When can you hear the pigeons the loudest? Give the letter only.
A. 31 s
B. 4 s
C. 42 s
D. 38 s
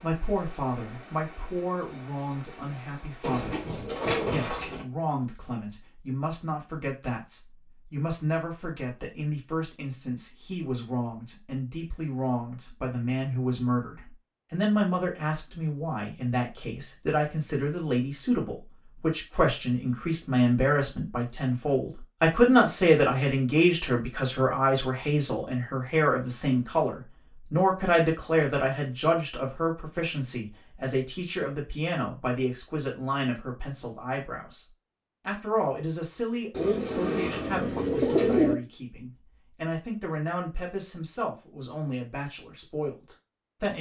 D.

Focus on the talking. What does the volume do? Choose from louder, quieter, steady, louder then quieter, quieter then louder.
louder then quieter.